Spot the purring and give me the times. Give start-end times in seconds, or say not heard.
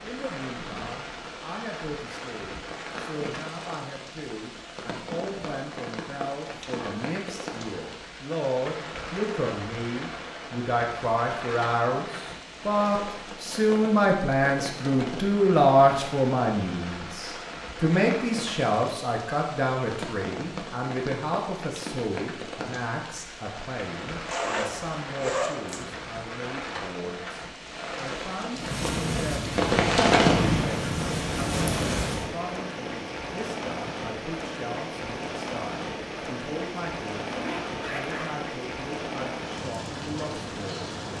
28.6-32.3.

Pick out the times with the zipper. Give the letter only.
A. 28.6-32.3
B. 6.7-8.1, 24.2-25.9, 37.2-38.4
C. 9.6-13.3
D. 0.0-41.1
B.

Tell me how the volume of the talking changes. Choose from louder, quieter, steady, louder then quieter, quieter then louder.
louder then quieter.